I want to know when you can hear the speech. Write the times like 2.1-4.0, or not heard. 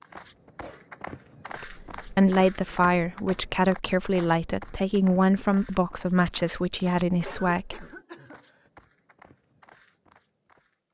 1.6-7.8.